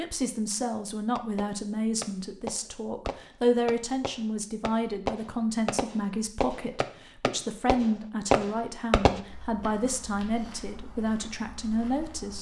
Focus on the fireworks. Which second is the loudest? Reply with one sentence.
The loudest moment of the fireworks is at 8 seconds.